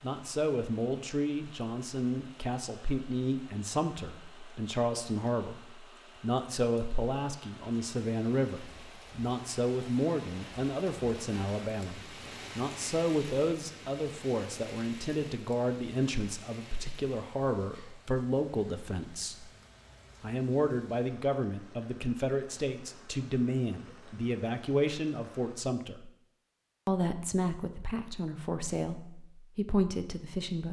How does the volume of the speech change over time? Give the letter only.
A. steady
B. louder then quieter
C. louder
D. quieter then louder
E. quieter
A.